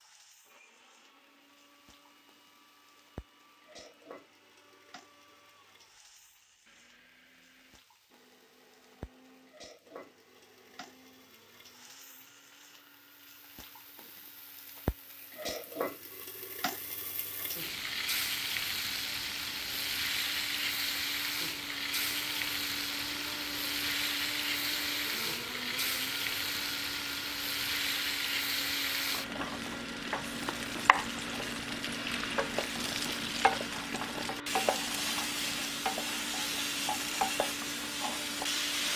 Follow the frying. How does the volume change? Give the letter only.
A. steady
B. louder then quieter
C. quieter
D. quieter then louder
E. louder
E.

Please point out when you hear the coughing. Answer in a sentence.
The coughing can't be heard in this clip.